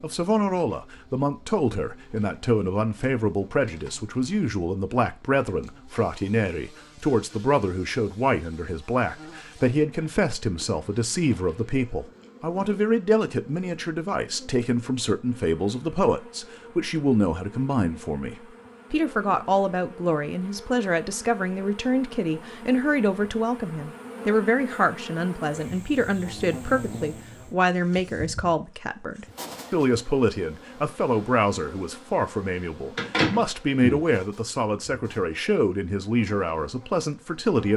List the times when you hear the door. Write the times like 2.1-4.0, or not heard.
33.0-34.0.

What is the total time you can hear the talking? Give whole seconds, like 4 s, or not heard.
38 s.